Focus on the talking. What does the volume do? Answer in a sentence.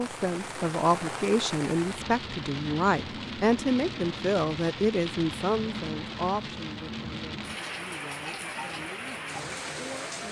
The volume of the talking goes down.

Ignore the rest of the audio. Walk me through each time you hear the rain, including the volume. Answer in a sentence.
You can hear the rain from 0.0 to 10.2 s, at a steady volume.